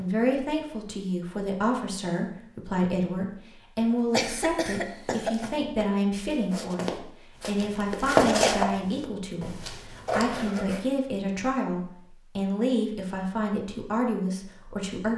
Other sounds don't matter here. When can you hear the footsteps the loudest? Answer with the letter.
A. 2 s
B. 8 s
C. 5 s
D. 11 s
B.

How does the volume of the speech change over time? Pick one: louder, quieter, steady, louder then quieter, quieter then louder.
steady.